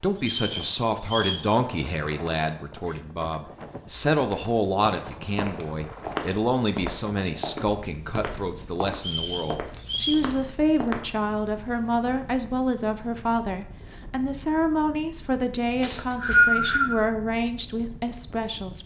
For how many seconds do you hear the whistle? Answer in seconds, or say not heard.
4 s.